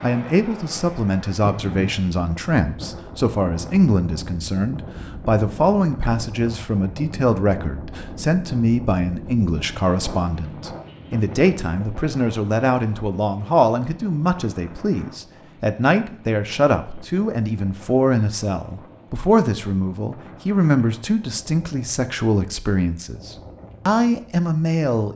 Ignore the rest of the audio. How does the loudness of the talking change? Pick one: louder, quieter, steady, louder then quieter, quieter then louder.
steady.